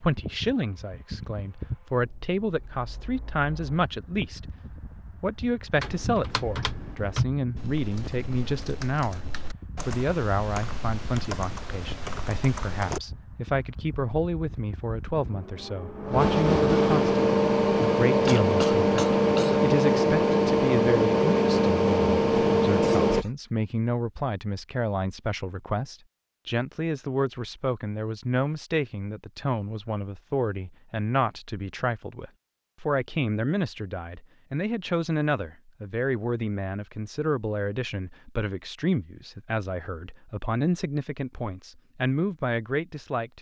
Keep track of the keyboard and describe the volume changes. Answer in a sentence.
The volume of the keyboard goes down, then up.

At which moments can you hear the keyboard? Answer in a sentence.
The keyboard can be heard from 5.8 to 13.0 s.